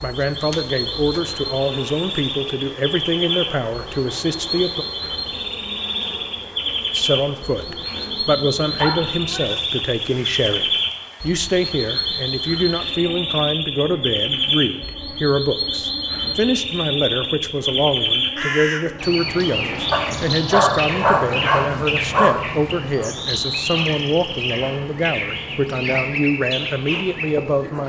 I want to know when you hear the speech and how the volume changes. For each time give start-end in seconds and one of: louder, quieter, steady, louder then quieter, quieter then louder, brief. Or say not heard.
0.0-4.8 steady
7.0-27.8 steady.